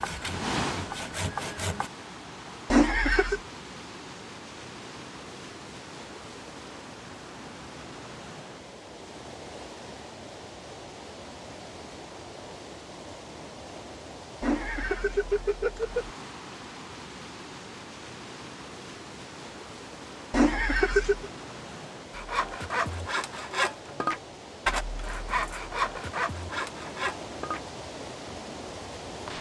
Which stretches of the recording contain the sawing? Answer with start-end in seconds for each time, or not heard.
0.0-1.9, 22.1-27.6.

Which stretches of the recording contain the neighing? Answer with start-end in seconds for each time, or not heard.
2.7-3.4, 14.4-16.1, 20.3-21.3.